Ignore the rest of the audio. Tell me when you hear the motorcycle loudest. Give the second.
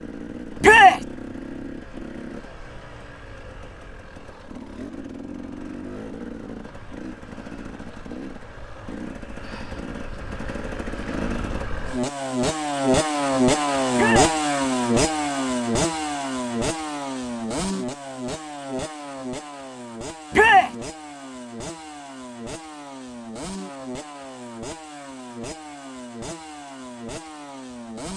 14 s.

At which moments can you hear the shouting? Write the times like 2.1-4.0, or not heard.
0.6-1.0, 13.9-14.3, 20.3-20.8.